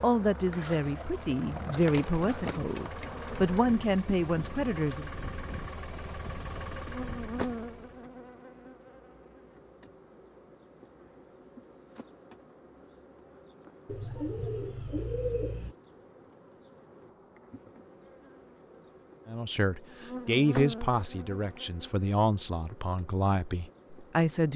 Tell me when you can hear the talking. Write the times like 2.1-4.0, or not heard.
0.0-5.1, 19.2-24.5.